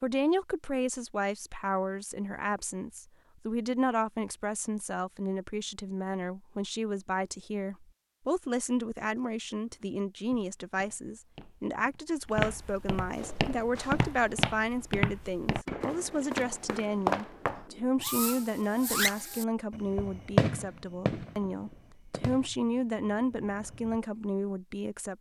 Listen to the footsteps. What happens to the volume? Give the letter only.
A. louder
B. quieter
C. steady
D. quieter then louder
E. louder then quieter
A.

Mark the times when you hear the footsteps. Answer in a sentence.
You can hear the footsteps from 9.6 to 17.6 s.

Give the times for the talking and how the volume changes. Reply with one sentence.
You can hear the talking from 0.0 to 25.1 s, at a steady volume.